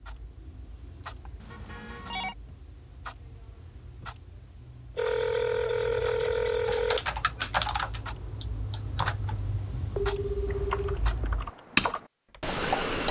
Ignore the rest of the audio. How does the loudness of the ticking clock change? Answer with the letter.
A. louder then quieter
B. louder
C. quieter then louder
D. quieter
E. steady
B.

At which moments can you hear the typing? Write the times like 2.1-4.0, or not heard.
6.7-12.4.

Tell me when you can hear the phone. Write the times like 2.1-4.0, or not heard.
1.4-2.4, 5.0-7.2, 9.9-11.3.